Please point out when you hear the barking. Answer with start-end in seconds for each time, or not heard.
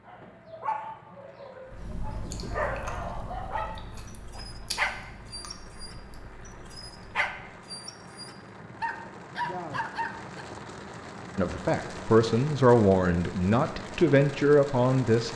0.1-10.4.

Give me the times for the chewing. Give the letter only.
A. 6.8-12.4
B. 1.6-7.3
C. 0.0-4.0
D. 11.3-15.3
B.